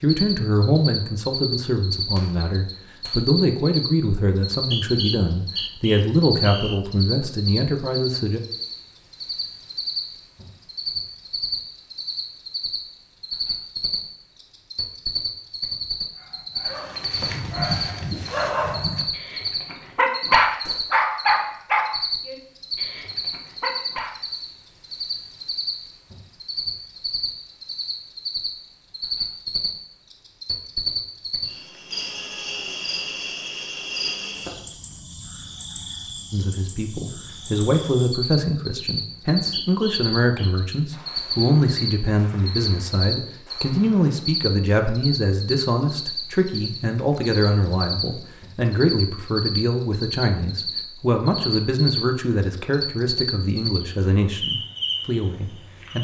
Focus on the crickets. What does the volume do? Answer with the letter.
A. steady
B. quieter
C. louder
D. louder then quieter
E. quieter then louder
A.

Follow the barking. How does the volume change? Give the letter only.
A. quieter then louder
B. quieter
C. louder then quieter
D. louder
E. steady
C.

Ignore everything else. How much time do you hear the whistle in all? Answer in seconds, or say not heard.
4 s.